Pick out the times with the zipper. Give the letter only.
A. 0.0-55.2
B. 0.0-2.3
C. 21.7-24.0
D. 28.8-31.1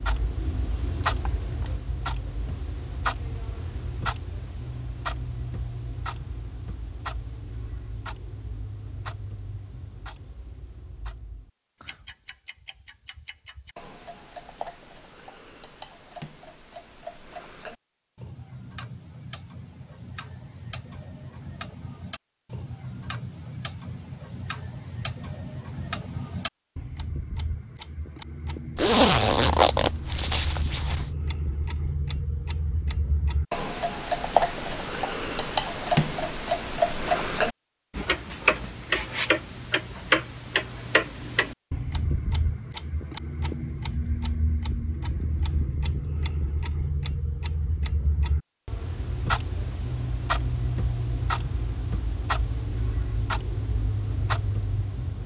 D.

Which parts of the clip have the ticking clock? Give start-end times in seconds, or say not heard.
0.0-55.2.